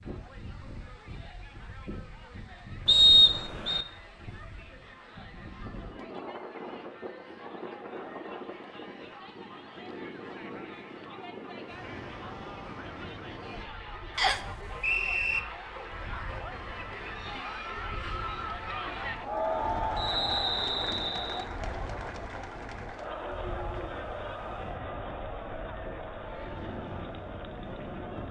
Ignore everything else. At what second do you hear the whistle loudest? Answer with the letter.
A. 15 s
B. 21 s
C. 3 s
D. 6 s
C.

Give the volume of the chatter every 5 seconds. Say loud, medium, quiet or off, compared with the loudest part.
quiet, quiet, medium, loud, loud, medium.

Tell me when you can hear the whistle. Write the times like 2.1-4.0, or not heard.
2.9-3.9, 14.2-15.4, 19.9-21.4.